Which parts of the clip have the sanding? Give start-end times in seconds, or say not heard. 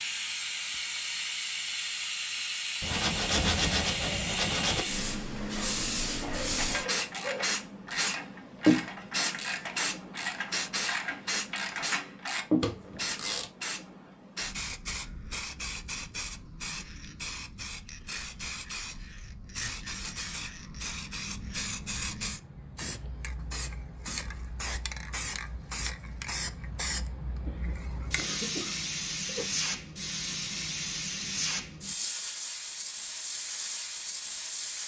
2.8-4.8.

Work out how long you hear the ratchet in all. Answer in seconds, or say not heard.
7 s.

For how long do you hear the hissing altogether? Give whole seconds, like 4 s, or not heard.
35 s.